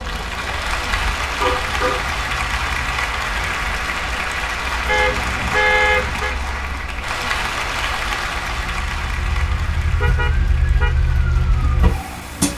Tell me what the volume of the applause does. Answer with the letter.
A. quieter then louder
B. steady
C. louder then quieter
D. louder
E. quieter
E.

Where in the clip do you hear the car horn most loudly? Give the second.
6 s.